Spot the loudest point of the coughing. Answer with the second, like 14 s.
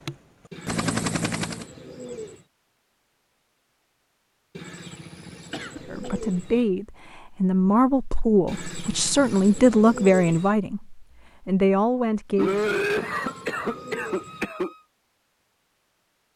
13 s.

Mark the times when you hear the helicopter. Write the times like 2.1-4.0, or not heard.
0.0-1.6.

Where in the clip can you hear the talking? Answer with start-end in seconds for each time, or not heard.
5.8-12.6.